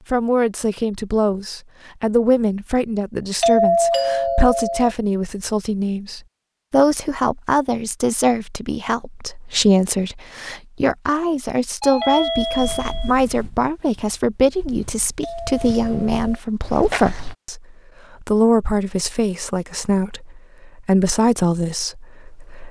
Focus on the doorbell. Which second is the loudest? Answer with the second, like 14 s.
4 s.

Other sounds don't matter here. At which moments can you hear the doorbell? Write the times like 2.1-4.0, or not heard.
3.4-5.0, 11.8-13.2, 15.2-16.4.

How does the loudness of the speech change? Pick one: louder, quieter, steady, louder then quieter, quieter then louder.
steady.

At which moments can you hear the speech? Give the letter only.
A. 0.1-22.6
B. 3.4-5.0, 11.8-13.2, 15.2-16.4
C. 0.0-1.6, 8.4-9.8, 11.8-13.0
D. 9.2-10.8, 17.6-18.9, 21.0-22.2
A.